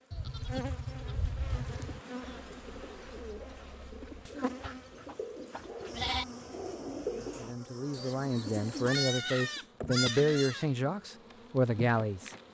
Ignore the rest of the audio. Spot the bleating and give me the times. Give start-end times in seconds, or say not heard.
0.1-2.0, 4.2-6.2, 8.8-10.7.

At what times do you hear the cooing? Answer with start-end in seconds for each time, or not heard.
0.9-9.7.